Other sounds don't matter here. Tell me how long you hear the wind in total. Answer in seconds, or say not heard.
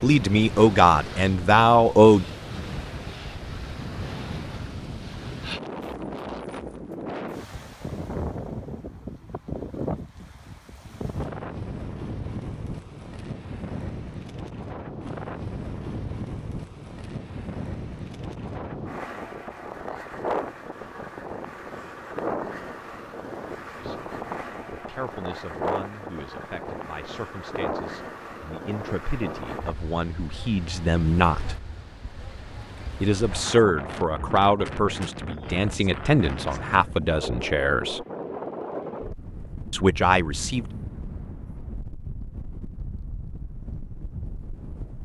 45 s.